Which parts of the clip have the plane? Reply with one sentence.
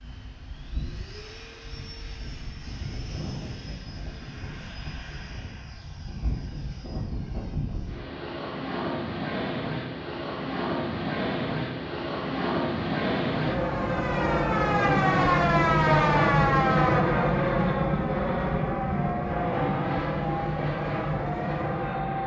The plane can be heard from 0.0 to 22.2 s.